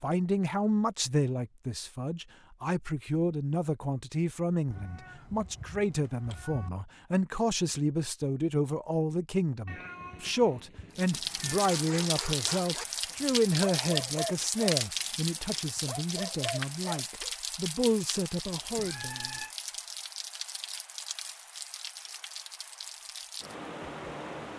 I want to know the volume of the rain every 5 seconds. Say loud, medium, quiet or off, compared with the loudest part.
off, off, loud, medium, medium.